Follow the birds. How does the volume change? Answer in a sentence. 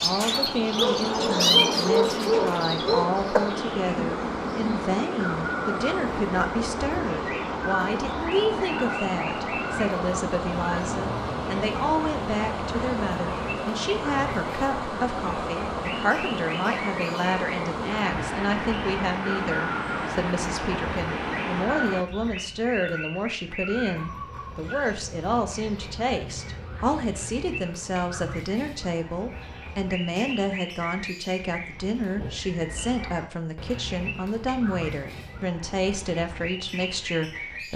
The volume of the birds goes down.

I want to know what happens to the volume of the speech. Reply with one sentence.
The volume of the speech stays about the same.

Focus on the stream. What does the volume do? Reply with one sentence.
The loudness of the stream stays about the same.